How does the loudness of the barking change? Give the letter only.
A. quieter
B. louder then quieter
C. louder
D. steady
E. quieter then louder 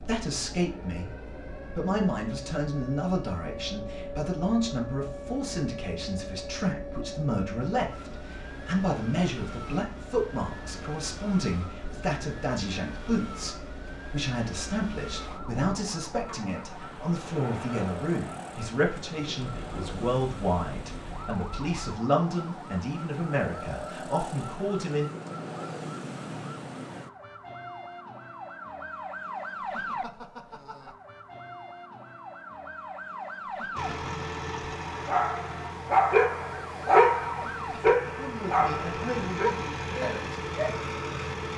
A.